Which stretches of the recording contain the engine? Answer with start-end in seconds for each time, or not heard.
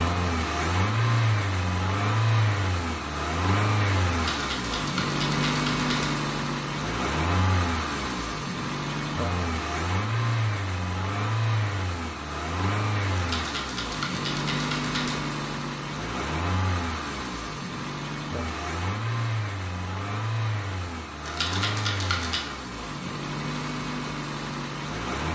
0.0-25.2.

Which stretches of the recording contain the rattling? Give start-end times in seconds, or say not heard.
4.1-6.1, 13.2-15.2, 21.2-22.4.